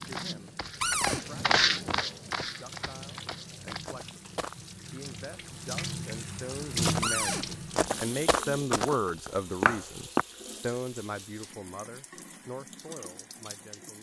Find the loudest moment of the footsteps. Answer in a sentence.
The loudest moment of the footsteps is at 2 seconds.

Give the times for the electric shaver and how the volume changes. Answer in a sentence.
The electric shaver can't be heard in this clip.